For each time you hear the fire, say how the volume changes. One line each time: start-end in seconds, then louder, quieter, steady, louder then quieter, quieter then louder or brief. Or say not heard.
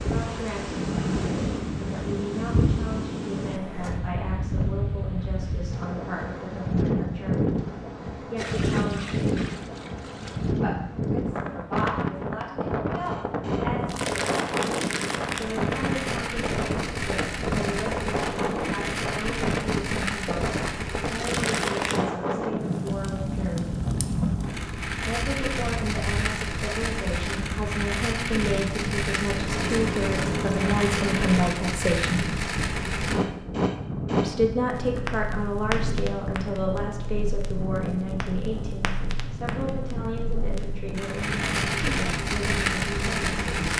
13.0-43.7 steady.